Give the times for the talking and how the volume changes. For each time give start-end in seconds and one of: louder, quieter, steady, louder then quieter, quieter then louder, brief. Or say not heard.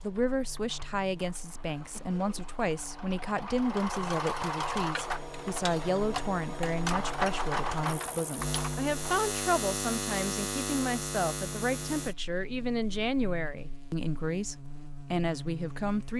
0.0-16.1 steady.